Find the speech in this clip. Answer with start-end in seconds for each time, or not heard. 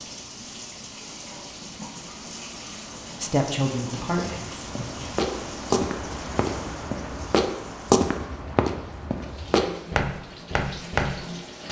3.2-4.8.